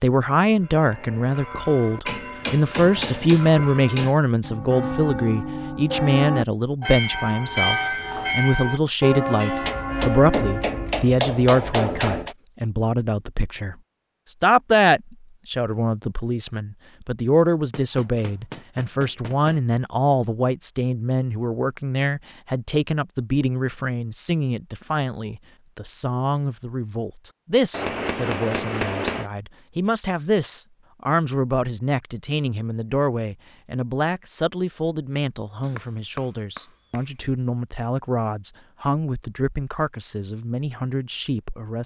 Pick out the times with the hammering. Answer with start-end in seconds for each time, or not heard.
2.0-4.2, 9.6-12.3, 17.7-19.6, 27.7-29.3, 35.6-37.0.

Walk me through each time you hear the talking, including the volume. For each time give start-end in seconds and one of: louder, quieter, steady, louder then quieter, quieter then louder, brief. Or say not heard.
0.0-41.8 quieter.